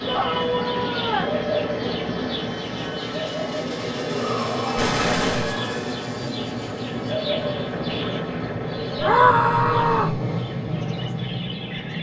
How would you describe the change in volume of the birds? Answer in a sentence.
The volume of the birds goes down.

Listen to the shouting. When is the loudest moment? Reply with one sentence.
The volume of the shouting peaks at 9 seconds.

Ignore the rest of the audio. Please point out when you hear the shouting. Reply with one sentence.
You can hear the shouting from 0.1 to 1.4 s, from 4.0 to 6.0 s and from 9.0 to 10.2 s.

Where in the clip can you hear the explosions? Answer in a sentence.
The explosions can be heard from 4.8 to 5.5 s.